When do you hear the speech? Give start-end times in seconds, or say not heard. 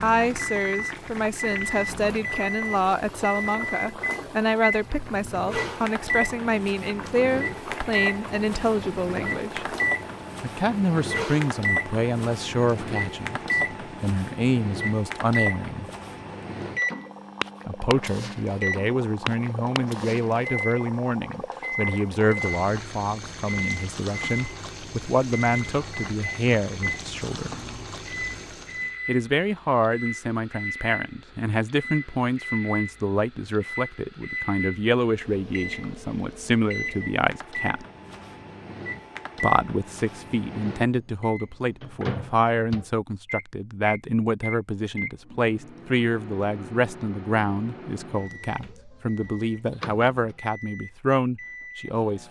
0.0-9.8, 10.4-15.9, 17.6-27.6, 29.1-37.9, 39.4-52.2.